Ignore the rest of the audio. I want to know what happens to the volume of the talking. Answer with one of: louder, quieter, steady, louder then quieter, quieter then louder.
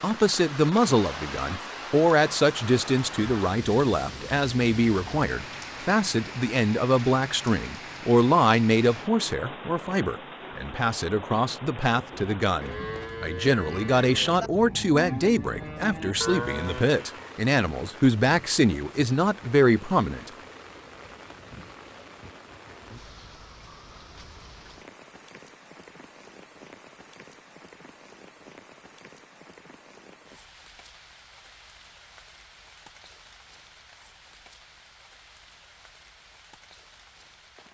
steady.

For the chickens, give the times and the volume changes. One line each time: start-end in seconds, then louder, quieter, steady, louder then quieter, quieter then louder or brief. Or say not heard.
not heard.